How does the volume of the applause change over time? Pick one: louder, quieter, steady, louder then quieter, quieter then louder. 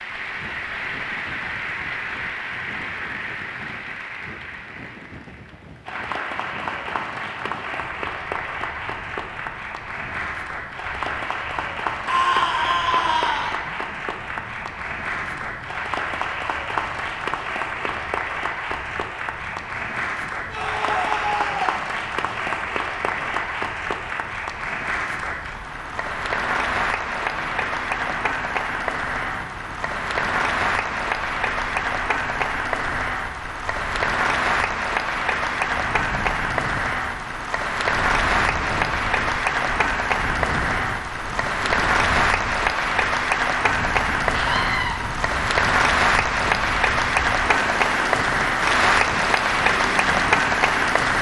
louder.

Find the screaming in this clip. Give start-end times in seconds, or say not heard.
12.1-13.6, 20.4-21.8, 44.3-45.0.